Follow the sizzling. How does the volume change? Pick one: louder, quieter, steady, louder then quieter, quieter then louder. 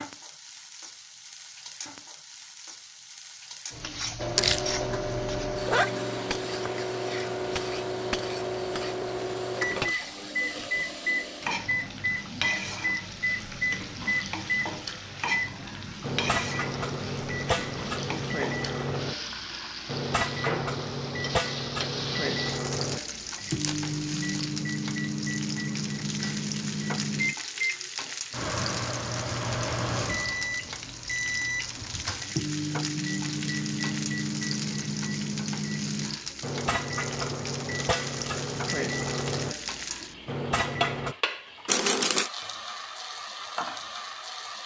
steady.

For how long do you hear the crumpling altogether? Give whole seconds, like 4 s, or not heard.
2 s.